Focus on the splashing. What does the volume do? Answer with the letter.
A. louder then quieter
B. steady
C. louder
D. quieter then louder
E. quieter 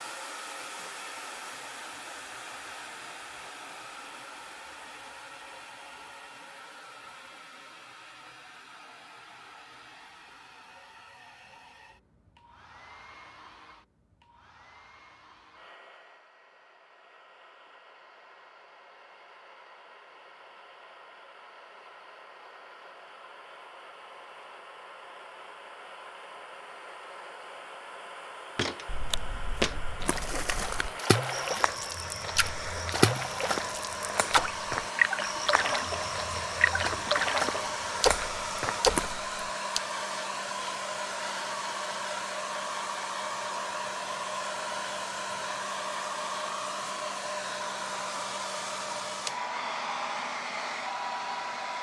C.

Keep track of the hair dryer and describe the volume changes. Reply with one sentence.
The volume of the hair dryer goes down, then up.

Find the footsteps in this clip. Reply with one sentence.
The footsteps can be heard from 28.6 to 39.2 s.